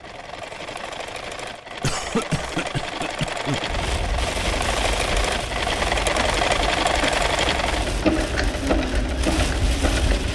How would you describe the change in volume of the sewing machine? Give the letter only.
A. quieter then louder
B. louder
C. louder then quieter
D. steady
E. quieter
B.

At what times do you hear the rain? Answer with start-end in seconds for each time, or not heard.
3.6-10.2.